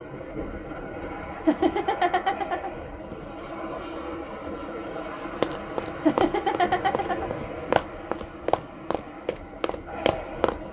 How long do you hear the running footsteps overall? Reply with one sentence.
You can hear the running footsteps for 5 seconds altogether.